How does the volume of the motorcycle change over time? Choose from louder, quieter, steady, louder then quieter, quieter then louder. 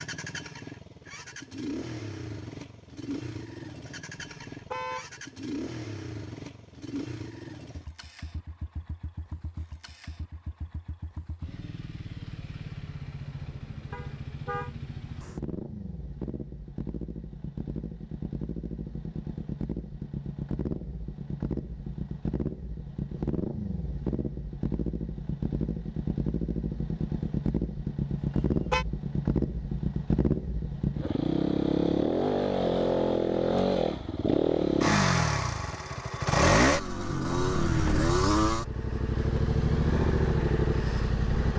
louder.